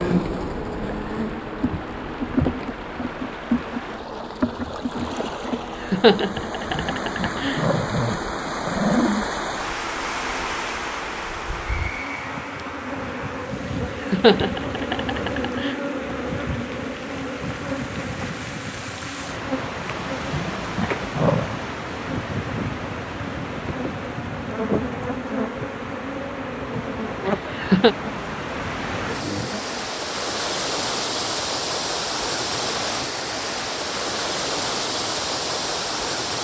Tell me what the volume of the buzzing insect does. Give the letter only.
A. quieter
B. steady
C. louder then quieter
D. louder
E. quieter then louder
E.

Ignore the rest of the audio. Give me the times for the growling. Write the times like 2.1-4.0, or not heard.
6.7-9.2, 20.3-21.6.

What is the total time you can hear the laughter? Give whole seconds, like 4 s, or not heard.
4 s.